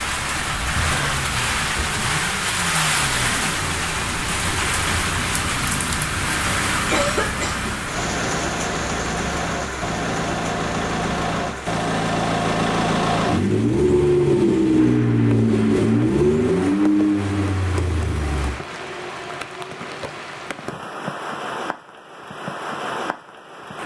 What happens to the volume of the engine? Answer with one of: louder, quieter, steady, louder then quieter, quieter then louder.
louder.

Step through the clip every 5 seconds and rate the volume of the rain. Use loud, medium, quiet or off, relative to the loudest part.
loud, loud, medium, medium, medium.